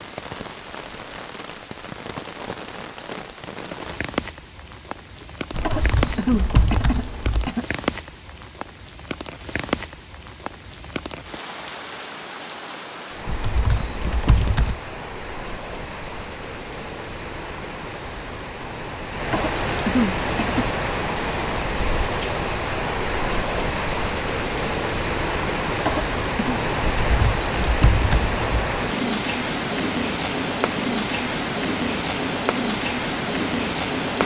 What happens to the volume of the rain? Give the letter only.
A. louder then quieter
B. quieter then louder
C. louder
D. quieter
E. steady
C.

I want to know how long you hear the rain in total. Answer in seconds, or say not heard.
34 s.